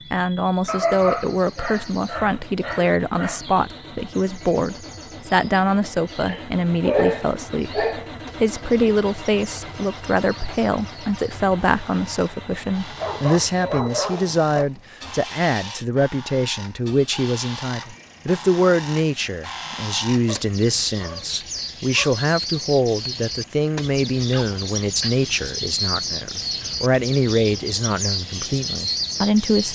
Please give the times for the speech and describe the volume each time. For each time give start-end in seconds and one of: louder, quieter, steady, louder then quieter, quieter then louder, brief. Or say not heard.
0.1-29.6 steady.